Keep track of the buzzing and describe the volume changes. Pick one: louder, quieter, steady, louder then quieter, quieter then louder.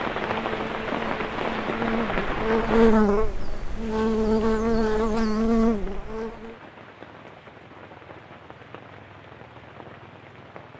louder.